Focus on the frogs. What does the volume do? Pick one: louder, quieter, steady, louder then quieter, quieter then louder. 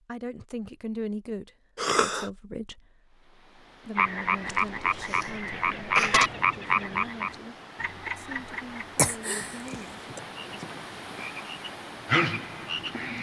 quieter then louder.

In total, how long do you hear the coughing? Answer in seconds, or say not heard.
4 s.